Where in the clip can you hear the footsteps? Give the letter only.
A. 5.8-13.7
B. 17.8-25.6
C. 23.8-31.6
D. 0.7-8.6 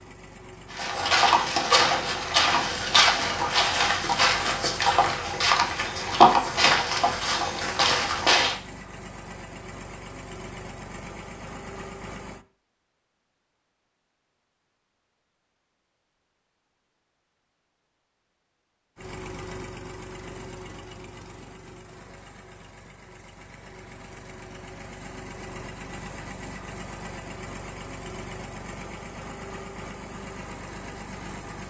D.